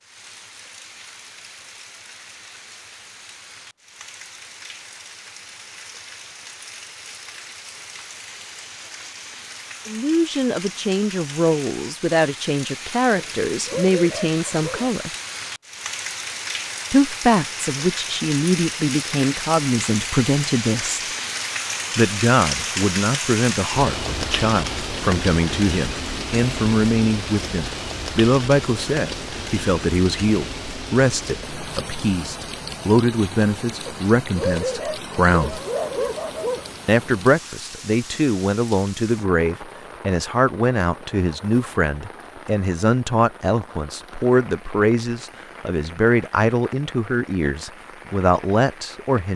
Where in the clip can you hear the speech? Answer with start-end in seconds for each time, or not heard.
9.8-15.1, 16.9-21.0, 21.9-35.6, 36.9-49.3.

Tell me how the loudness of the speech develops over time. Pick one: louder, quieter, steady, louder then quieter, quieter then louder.
steady.